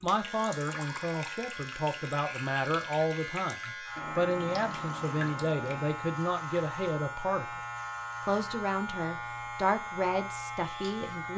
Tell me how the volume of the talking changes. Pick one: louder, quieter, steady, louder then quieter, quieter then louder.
steady.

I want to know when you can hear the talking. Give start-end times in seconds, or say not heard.
0.0-7.5, 8.2-11.3.